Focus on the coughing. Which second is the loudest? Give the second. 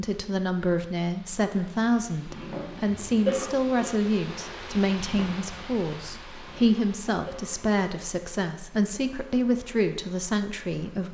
3 s.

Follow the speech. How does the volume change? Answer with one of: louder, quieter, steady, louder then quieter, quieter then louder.
steady.